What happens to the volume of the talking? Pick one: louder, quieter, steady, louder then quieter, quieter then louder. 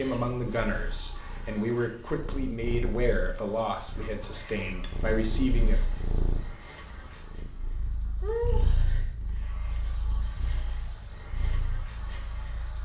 steady.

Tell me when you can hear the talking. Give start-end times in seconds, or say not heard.
0.0-5.8.